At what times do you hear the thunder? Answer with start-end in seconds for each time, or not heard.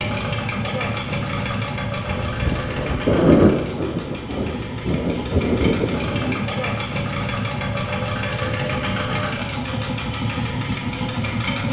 2.0-6.4.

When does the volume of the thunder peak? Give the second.
3 s.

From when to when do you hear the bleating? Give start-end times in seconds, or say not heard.
not heard.